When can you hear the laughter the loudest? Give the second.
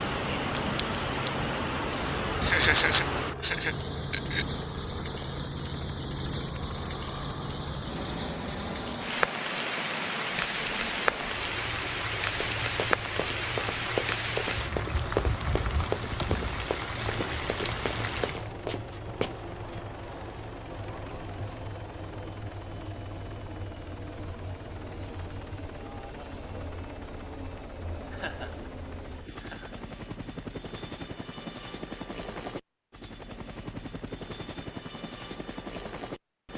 3 s.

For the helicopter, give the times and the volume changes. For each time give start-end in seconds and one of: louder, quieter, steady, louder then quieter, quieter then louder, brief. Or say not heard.
0.0-36.5 steady.